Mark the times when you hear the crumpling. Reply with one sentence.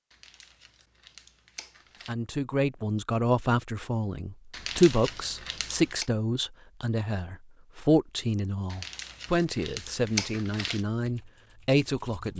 The crumpling can be heard from 0.1 to 2.1 s, from 4.5 to 6.1 s and from 8.7 to 10.8 s.